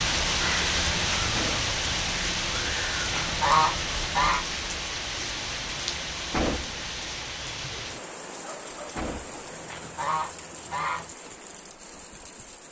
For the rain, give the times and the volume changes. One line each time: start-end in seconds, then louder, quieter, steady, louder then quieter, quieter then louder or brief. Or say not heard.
0.0-12.6 quieter.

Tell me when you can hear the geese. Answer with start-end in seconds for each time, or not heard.
3.0-4.5, 9.5-11.1.